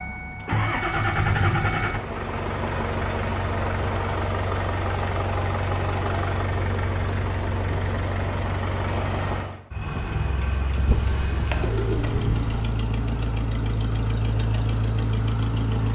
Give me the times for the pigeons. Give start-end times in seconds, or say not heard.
10.8-12.7.